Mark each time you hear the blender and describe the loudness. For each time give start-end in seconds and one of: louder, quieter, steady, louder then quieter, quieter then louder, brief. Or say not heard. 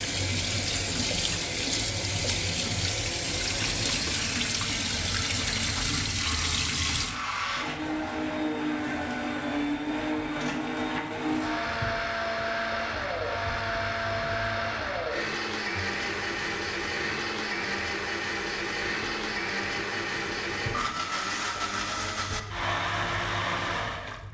0.0-24.2 louder.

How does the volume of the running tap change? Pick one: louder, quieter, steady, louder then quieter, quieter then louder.
quieter.